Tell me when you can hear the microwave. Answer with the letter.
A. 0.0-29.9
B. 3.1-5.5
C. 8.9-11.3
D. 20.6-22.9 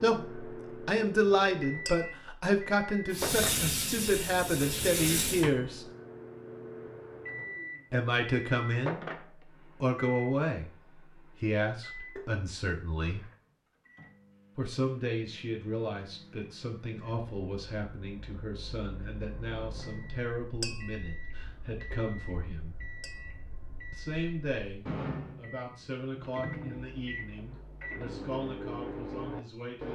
A.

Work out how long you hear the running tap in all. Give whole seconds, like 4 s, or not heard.
2 s.